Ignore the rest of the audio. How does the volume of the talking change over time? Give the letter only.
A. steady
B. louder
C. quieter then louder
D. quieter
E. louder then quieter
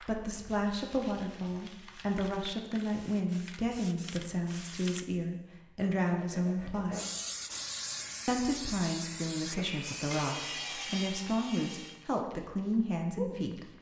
A.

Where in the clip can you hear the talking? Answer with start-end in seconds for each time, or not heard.
0.0-7.0, 8.2-13.7.